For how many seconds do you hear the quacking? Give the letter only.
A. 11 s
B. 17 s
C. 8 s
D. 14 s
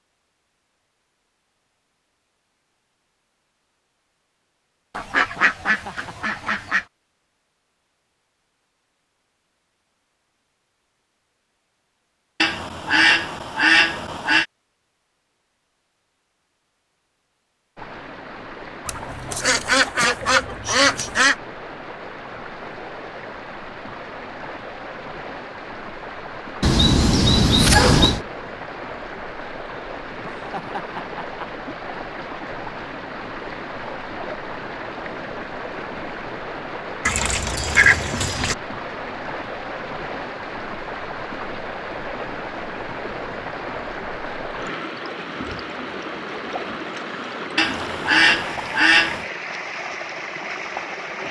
A.